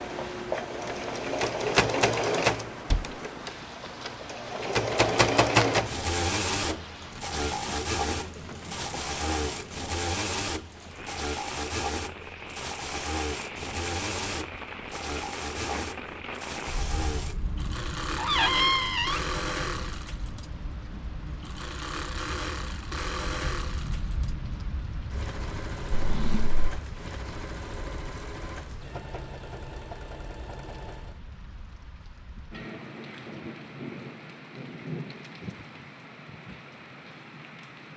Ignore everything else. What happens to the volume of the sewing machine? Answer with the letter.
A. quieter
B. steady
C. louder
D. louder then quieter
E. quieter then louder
A.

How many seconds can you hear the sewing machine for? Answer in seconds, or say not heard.
31 s.